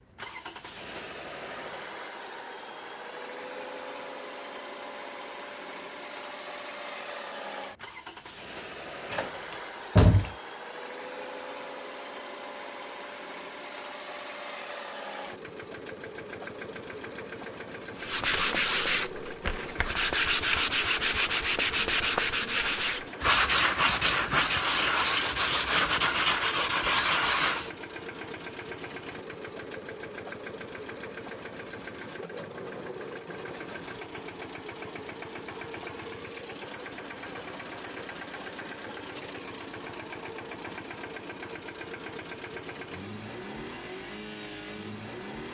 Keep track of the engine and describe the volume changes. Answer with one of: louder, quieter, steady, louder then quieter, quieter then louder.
steady.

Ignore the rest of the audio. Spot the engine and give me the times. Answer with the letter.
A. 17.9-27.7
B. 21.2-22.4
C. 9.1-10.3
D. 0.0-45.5
D.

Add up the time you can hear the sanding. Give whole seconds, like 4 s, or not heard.
10 s.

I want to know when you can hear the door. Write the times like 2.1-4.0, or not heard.
9.1-10.3.